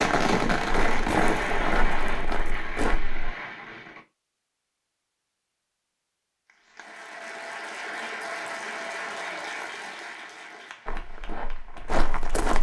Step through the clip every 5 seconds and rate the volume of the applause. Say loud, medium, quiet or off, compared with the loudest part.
off, loud, medium.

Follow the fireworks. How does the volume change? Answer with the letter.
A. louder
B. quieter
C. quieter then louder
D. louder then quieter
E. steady
B.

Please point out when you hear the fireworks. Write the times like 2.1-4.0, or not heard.
0.0-4.0.